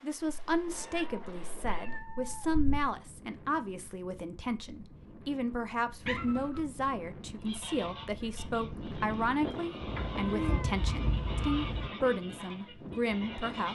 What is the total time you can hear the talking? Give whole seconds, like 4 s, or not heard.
14 s.